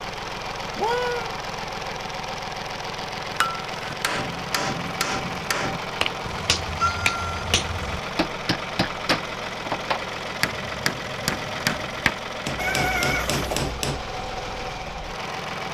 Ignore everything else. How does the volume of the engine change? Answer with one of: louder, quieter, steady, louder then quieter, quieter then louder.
steady.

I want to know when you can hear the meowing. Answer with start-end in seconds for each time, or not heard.
0.8-1.4, 6.2-8.0, 12.6-13.8.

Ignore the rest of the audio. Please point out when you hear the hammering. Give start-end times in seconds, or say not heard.
3.3-14.0.